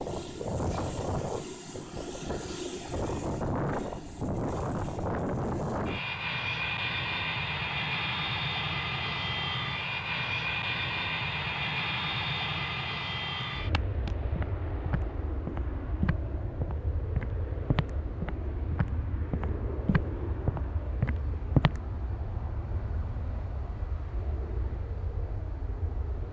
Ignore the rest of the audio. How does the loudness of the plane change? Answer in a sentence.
The loudness of the plane goes down.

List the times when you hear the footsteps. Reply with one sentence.
The footsteps can be heard from 13.4 to 21.8 s.